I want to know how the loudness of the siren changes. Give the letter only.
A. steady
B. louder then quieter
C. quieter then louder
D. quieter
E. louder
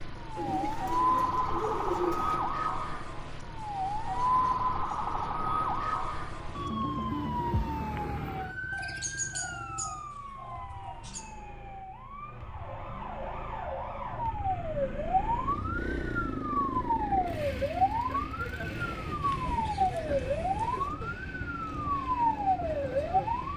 C.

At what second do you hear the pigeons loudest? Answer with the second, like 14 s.
2 s.